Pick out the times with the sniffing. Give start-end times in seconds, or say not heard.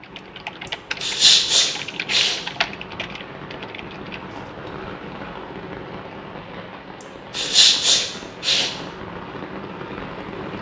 1.0-2.4, 7.3-8.7.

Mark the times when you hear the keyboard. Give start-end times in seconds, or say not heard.
0.0-4.5.